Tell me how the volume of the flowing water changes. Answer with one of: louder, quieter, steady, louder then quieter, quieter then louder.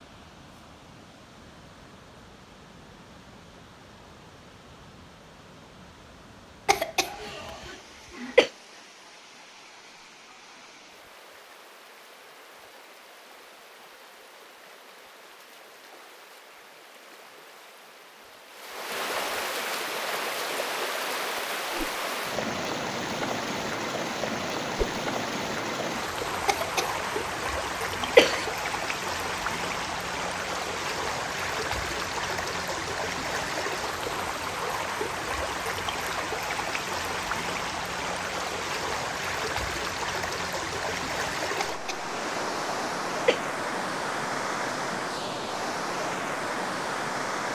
louder.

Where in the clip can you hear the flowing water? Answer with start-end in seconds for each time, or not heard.
0.0-47.4.